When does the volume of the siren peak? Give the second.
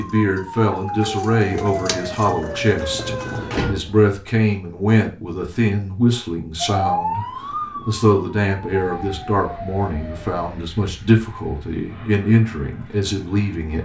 7 s.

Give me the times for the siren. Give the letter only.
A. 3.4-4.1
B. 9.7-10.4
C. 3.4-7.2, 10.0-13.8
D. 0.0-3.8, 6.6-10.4
D.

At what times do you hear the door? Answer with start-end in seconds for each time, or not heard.
3.4-4.1.